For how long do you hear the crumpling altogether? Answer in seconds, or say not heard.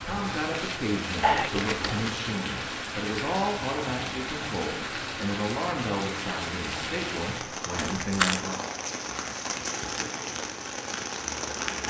2 s.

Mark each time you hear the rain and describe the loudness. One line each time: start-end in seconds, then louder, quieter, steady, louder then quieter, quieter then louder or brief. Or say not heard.
0.0-11.8 steady.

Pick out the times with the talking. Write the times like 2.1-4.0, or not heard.
0.1-8.7.